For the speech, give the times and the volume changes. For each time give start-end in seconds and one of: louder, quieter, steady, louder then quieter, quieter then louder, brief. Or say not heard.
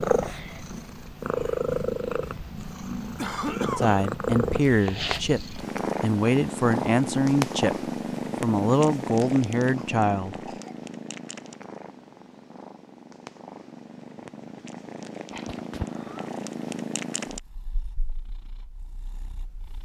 3.8-10.4 steady.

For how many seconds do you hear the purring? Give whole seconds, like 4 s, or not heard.
20 s.